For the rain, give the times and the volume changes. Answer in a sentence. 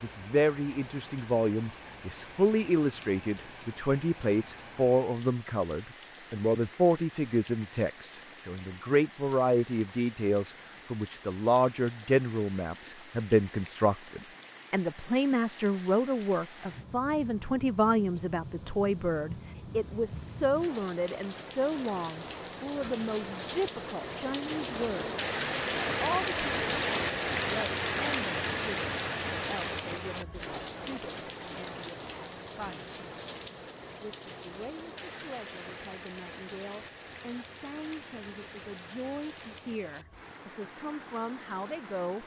The rain can be heard from 0.0 to 42.2 s, getting louder then quieter.